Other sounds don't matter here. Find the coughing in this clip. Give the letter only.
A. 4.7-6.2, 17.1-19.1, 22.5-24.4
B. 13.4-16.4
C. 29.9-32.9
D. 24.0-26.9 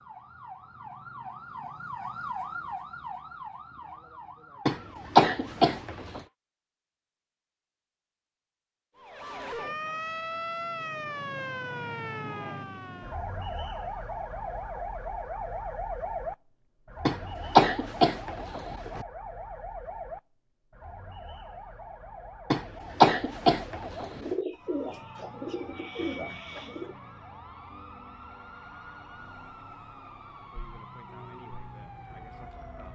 A.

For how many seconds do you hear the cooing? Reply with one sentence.
The cooing can be heard for 3 seconds in total.